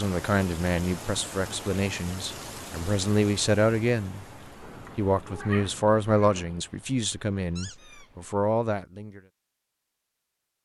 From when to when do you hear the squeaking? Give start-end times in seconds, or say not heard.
7.5-8.1.